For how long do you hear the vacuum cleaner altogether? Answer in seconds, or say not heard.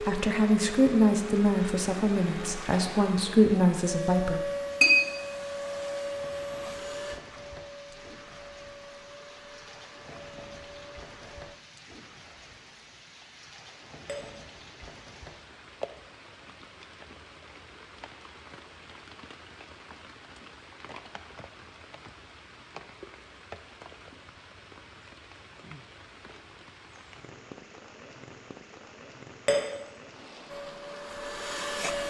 13 s.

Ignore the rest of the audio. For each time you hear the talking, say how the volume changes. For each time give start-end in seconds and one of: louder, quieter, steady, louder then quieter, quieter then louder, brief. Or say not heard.
0.0-4.4 quieter then louder.